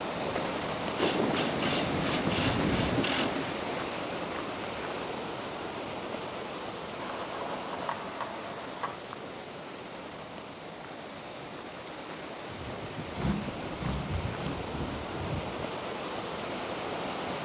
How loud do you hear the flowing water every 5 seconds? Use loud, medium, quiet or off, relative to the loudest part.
loud, medium, medium, loud.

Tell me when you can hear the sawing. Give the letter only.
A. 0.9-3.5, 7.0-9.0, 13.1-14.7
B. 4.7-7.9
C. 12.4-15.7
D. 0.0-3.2
A.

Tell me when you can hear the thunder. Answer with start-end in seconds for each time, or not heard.
12.4-15.7.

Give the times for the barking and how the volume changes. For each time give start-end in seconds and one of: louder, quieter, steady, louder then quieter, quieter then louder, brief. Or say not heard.
not heard.